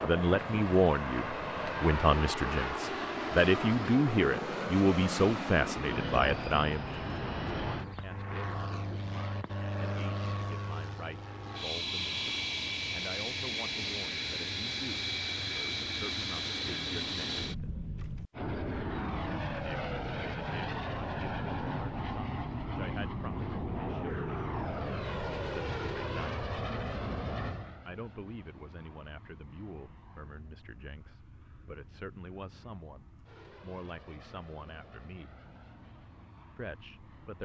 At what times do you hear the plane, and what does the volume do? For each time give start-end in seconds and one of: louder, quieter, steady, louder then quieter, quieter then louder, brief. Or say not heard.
0.0-37.3 quieter.